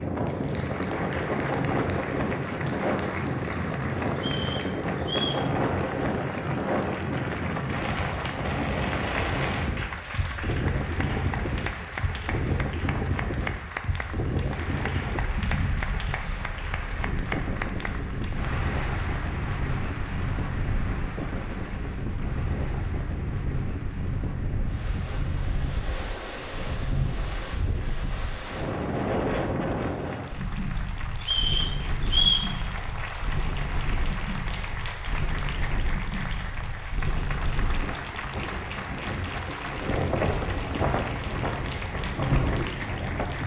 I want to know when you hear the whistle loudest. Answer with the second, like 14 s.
32 s.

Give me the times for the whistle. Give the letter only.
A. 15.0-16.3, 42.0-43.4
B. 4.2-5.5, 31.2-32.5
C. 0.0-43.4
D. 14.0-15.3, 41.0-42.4
B.